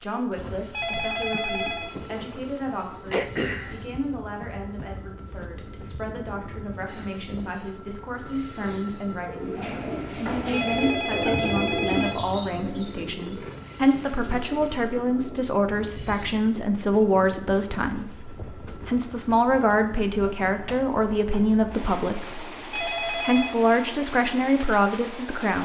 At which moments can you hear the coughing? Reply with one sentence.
The coughing can be heard from 3.1 to 3.8 s.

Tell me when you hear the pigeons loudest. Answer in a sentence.
The loudest moment of the pigeons is at 12 seconds.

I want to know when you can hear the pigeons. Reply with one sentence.
The pigeons can be heard from 9.2 to 14.8 s.